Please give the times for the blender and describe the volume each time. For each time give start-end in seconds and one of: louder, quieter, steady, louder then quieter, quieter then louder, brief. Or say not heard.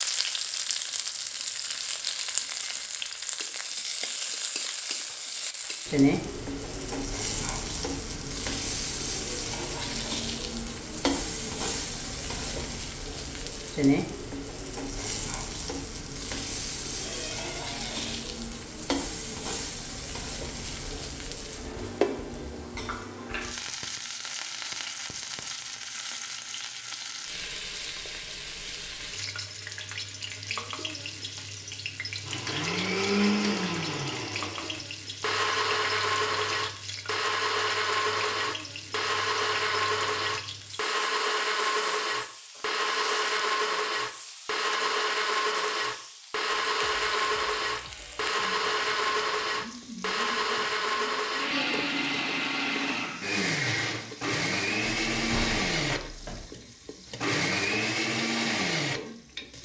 32.2-59.5 steady.